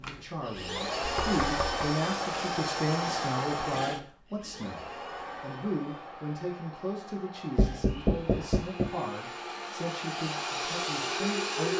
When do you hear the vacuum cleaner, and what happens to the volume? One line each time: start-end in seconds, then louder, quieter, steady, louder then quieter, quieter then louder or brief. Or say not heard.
0.0-11.7 quieter then louder.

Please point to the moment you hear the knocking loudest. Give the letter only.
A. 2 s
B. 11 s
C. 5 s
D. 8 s
D.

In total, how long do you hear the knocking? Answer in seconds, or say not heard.
2 s.